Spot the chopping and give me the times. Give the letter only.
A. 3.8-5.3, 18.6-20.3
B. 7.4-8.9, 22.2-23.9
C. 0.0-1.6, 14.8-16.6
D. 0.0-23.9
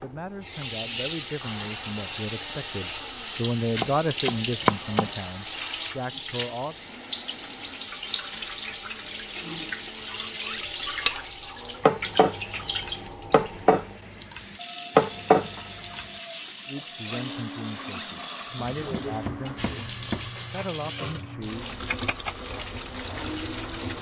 A.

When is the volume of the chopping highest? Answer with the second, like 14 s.
5 s.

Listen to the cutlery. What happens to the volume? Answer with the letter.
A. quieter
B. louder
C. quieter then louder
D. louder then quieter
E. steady
D.